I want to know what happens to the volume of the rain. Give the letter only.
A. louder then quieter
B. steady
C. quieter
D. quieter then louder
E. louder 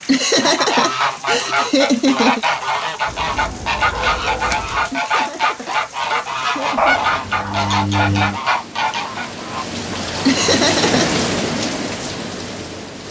E.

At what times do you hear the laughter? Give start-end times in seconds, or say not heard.
0.1-2.5, 4.9-7.0, 10.2-11.1.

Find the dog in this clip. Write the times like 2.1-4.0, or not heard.
3.0-4.9, 6.8-8.4.